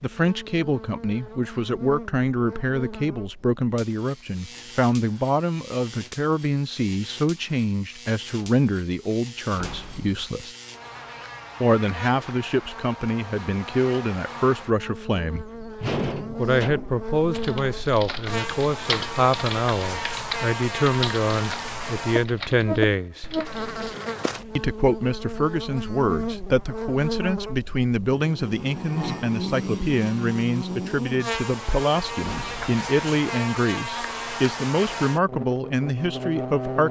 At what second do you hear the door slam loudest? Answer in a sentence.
The volume of the door slam peaks at 16 seconds.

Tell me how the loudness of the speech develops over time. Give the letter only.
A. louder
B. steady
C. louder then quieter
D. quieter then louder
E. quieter
B.